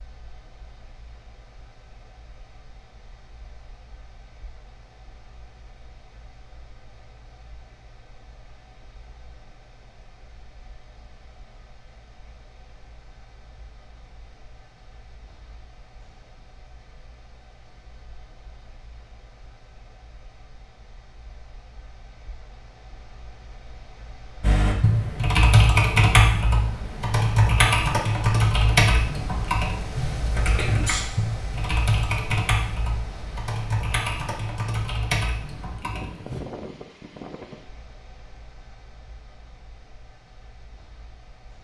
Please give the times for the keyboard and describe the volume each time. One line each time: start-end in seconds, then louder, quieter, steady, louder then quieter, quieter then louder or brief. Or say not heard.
24.4-36.4 quieter.